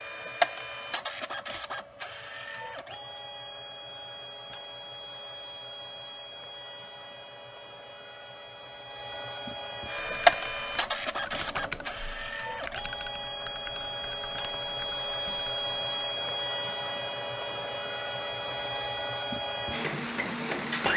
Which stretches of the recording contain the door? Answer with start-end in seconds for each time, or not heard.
not heard.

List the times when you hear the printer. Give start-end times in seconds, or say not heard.
0.0-20.9.